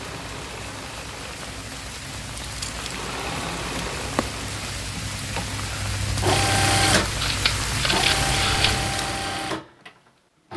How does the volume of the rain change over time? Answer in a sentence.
The volume of the rain goes up.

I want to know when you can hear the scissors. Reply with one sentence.
You can hear the scissors from 2.0 to 2.9 s and from 7.0 to 8.8 s.